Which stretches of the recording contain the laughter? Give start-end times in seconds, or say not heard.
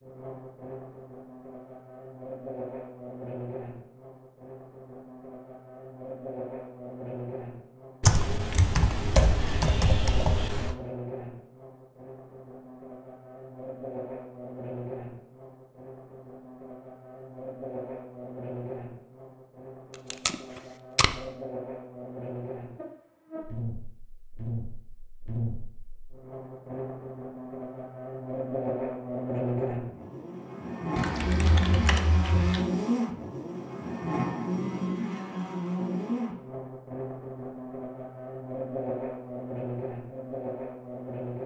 not heard.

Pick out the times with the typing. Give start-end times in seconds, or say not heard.
8.0-10.8, 30.9-32.6.